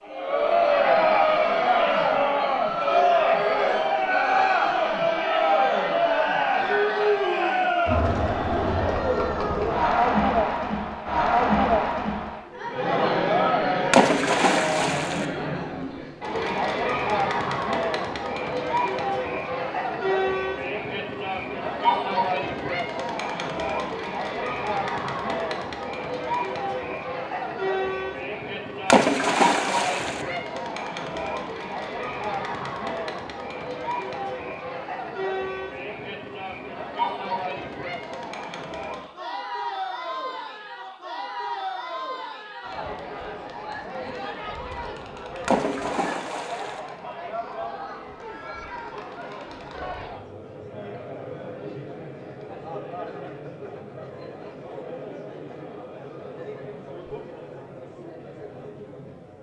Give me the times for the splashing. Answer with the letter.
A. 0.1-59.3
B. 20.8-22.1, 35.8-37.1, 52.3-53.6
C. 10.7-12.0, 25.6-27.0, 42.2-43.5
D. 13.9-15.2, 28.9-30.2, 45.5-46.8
D.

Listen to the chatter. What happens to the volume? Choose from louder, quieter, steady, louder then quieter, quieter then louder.
quieter.